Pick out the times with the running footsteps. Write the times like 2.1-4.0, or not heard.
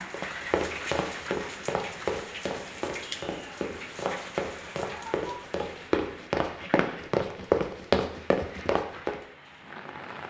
0.1-9.2.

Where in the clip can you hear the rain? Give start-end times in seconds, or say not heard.
0.0-10.2.